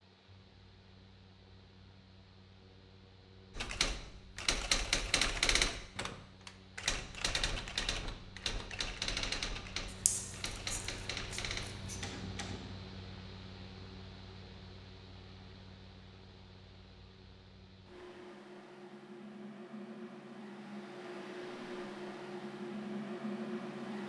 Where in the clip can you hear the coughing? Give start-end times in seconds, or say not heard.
not heard.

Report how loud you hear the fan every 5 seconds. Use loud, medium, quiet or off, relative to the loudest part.
quiet, quiet, medium, medium, loud.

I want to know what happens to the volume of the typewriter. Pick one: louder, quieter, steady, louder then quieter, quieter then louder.
quieter.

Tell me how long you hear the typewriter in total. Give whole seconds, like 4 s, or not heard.
9 s.